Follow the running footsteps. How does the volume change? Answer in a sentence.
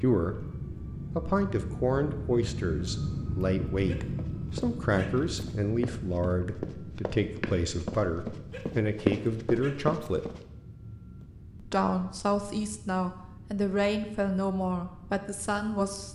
The volume of the running footsteps goes up.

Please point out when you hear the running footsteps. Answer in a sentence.
The running footsteps can be heard from 4.2 to 10.4 s.